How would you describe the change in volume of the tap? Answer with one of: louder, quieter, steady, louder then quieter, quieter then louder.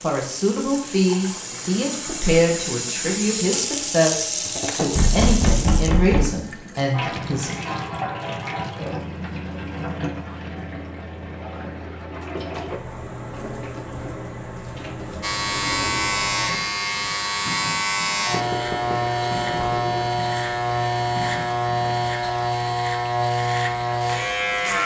quieter.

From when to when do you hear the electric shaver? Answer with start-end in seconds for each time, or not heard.
15.2-24.8.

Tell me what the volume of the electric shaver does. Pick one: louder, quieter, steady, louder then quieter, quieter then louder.
steady.